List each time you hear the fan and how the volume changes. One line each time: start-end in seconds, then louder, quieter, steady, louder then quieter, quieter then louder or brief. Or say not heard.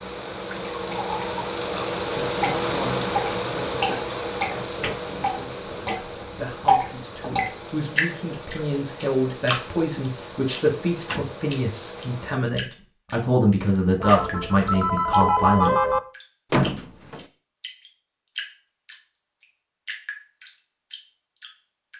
0.0-12.4 quieter.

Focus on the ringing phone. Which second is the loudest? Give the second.
16 s.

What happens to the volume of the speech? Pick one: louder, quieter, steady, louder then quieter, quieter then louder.
louder.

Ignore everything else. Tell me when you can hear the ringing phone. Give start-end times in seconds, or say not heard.
14.0-16.0.